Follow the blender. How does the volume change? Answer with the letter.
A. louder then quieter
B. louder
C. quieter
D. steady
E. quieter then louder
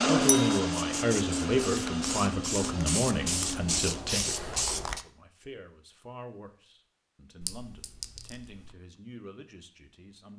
C.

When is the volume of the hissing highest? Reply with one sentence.
The volume of the hissing peaks at 4 seconds.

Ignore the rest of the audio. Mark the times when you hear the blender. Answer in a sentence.
The blender can be heard from 0.0 to 4.0 s.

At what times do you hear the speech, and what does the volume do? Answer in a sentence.
The speech can be heard from 0.1 to 10.3 s, getting quieter.